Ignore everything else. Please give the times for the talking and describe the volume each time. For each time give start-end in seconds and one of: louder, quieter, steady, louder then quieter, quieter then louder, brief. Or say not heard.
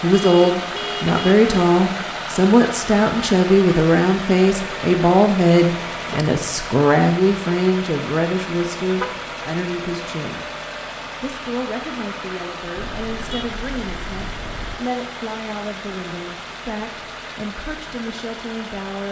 0.0-10.4 quieter
11.2-19.0 steady.